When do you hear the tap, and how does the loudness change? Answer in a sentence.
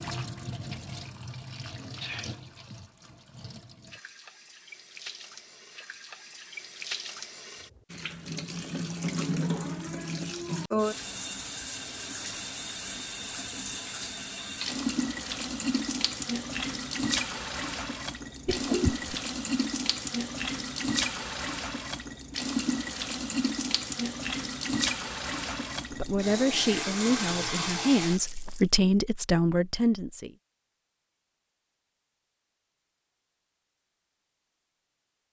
You can hear the tap from 0.0 to 28.6 s, getting louder.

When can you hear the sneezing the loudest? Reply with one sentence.
The loudest moment of the sneezing is at 19 seconds.